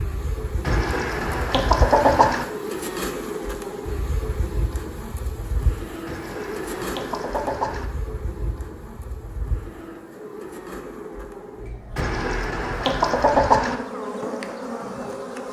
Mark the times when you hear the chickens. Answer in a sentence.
The chickens can be heard from 0.7 to 2.5 s, from 6.0 to 7.9 s and from 11.9 to 13.8 s.